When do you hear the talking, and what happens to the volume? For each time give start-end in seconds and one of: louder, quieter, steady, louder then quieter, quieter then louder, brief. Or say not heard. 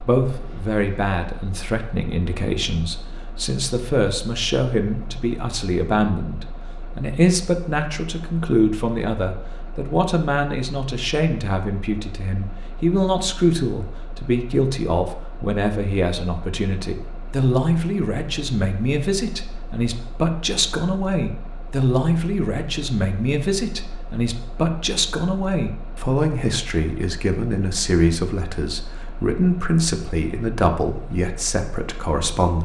0.0-32.6 steady.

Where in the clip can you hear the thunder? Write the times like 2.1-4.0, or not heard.
not heard.